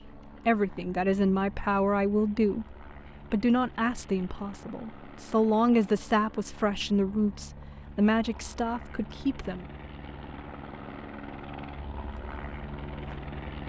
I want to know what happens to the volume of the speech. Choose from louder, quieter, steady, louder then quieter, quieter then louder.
steady.